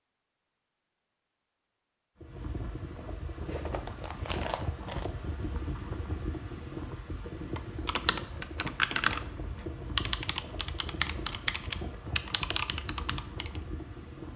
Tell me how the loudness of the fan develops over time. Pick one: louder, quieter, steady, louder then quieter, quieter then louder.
steady.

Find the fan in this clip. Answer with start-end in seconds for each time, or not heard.
2.1-14.3.